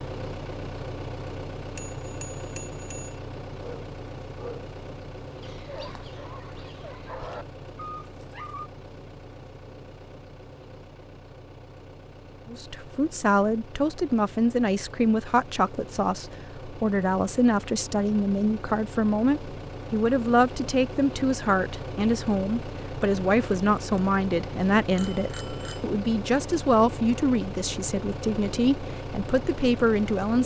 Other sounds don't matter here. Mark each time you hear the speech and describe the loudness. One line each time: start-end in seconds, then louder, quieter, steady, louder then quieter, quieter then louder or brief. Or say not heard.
12.4-30.4 steady.